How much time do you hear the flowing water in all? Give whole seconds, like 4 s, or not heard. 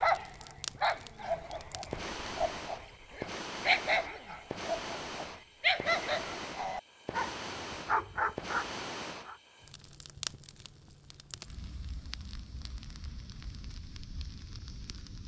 not heard.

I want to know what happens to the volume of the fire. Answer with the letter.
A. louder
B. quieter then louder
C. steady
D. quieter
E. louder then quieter
D.